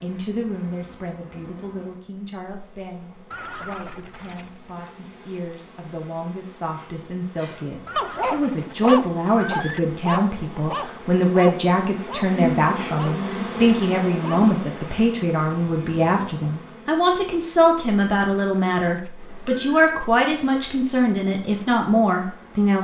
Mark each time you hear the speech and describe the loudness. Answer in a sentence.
The speech can be heard from 0.0 to 22.7 s, getting louder.